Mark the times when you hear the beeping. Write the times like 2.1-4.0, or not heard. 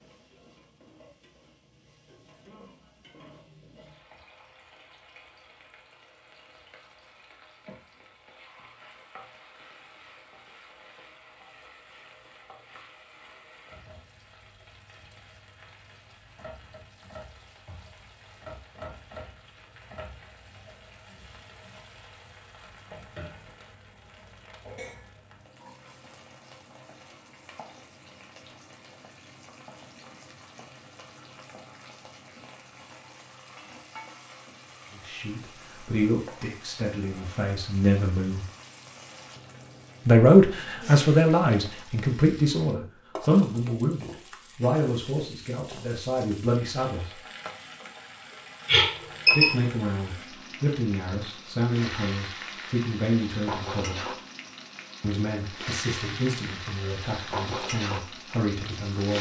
48.6-49.5.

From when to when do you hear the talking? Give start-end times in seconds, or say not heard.
34.9-38.5, 40.0-47.2, 49.3-54.0, 55.0-59.1.